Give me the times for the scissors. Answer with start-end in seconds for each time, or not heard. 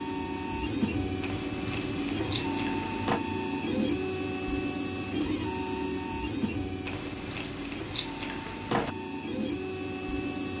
1.2-3.2, 6.8-8.9.